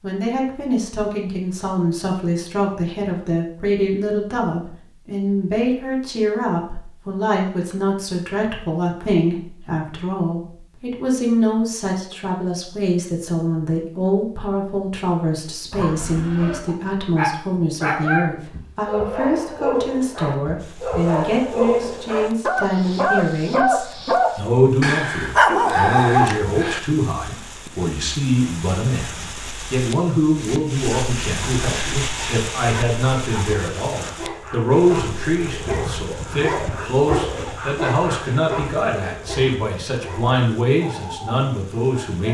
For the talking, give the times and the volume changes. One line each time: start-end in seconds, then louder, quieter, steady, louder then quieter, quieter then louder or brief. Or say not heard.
0.0-42.2 steady.